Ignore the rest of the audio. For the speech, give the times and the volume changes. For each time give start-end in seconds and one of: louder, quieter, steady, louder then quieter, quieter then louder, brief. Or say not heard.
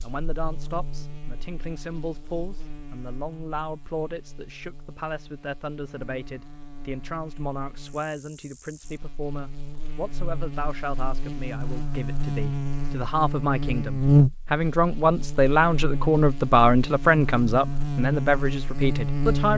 0.0-19.5 louder.